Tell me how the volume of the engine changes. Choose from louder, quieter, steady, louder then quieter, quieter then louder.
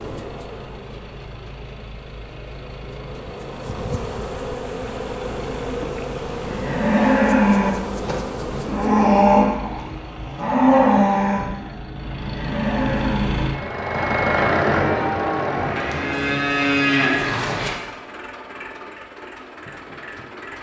louder then quieter.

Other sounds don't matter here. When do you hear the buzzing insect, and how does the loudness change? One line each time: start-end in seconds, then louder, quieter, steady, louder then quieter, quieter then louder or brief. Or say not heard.
0.0-9.0 louder.